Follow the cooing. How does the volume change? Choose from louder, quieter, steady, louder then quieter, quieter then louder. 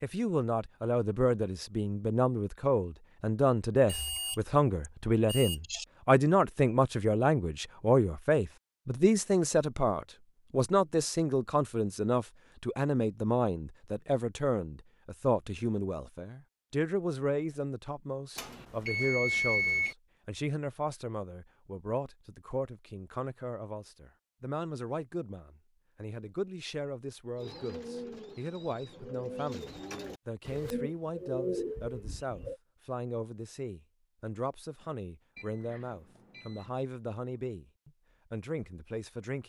louder.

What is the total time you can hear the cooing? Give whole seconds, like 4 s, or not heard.
5 s.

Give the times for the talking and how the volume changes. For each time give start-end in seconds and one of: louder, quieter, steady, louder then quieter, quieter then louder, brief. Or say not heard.
0.0-39.4 quieter.